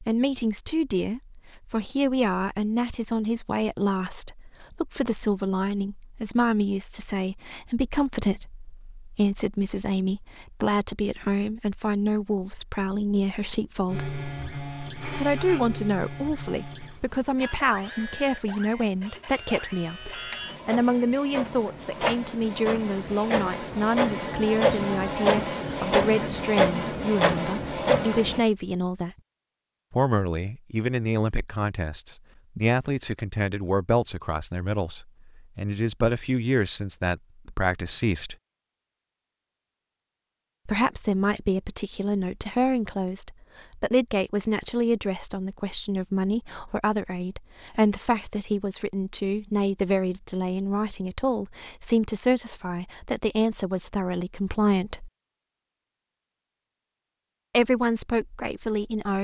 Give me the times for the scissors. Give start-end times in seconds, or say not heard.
not heard.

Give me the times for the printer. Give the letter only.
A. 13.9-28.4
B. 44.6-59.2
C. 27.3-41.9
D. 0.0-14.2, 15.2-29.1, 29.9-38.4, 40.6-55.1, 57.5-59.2
A.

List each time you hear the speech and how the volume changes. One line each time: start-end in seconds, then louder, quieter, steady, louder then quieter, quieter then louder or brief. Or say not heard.
0.0-14.2 steady
15.2-29.1 steady
29.9-38.4 steady
40.6-55.1 steady
57.5-59.2 brief.